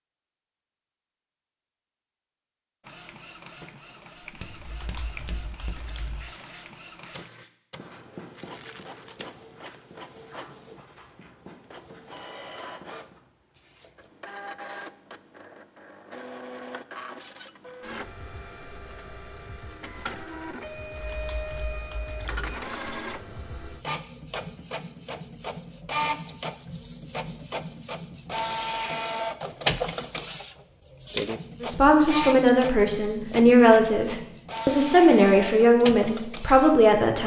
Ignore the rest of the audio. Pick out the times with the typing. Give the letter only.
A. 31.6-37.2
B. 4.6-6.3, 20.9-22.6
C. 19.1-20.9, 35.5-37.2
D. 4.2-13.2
B.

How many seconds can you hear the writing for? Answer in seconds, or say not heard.
9 s.